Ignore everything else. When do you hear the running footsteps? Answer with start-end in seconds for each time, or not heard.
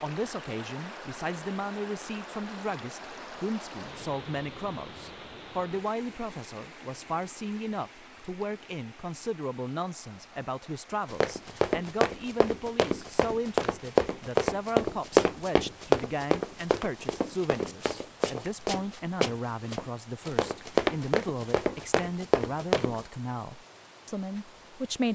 11.1-23.1.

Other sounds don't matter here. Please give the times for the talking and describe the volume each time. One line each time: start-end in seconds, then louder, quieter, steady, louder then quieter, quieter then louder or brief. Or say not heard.
0.0-25.1 steady.